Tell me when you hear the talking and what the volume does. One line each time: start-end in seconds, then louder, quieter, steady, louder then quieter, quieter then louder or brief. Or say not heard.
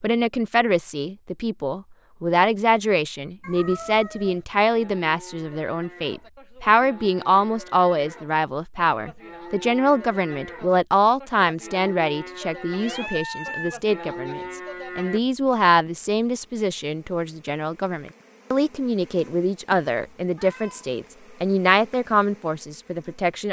0.0-23.4 steady.